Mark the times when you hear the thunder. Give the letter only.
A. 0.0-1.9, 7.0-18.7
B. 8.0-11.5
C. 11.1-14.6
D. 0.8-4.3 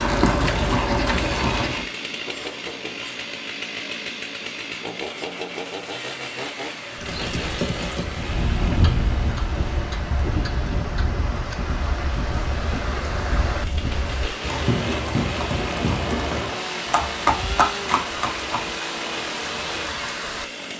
B.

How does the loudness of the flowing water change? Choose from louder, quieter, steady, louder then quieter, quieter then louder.
louder.